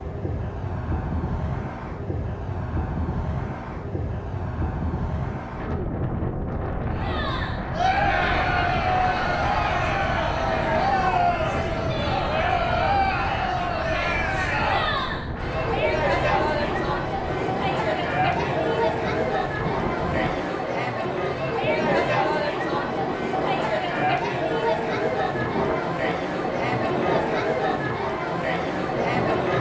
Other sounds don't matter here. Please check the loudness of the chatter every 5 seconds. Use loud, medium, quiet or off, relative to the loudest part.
off, loud, loud, loud, loud, loud.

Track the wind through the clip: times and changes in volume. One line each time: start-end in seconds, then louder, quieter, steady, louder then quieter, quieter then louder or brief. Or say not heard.
0.0-29.5 steady.